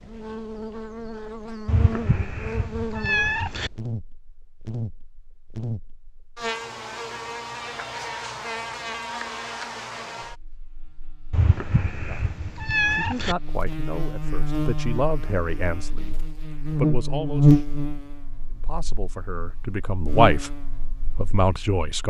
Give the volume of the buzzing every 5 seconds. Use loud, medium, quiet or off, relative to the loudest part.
medium, medium, medium, loud, medium.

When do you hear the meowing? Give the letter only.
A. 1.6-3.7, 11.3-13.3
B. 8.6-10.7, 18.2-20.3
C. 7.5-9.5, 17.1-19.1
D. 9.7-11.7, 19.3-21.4
A.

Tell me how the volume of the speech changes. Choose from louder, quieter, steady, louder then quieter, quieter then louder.
louder.